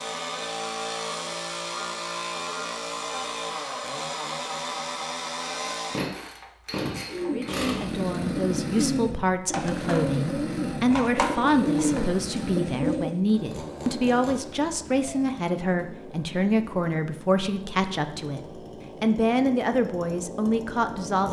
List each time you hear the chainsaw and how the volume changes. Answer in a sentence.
The chainsaw can be heard from 0.0 to 21.2 s, getting quieter.